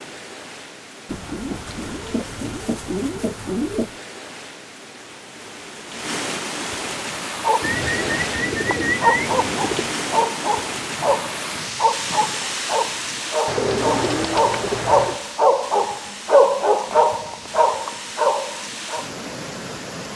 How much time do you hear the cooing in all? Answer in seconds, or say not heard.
7 s.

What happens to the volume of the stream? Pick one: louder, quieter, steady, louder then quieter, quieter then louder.
louder then quieter.